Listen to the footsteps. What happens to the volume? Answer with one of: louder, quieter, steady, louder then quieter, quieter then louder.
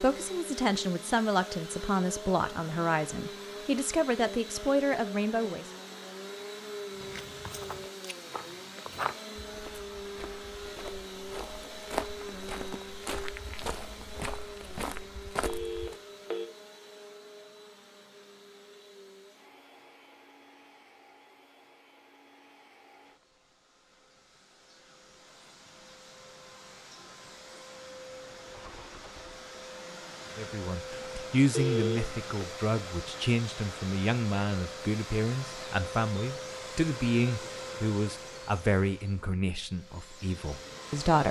louder.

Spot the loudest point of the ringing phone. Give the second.
32 s.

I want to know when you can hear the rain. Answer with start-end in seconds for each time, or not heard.
not heard.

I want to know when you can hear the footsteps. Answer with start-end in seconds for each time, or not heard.
7.0-15.9.